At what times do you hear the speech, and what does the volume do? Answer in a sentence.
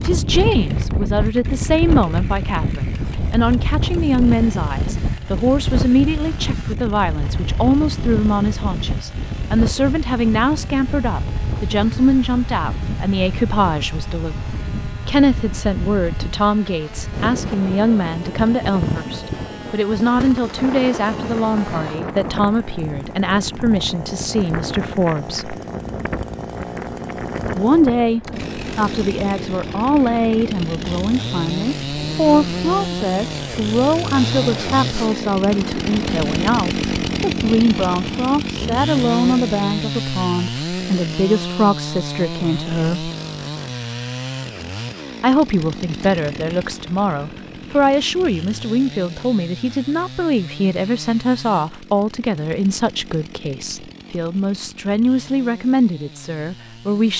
The speech can be heard from 0.0 to 14.3 s, at a steady volume; from 15.1 to 25.6 s, at a steady volume; from 27.6 to 43.1 s, at a steady volume; and from 45.2 to 57.1 s, at a steady volume.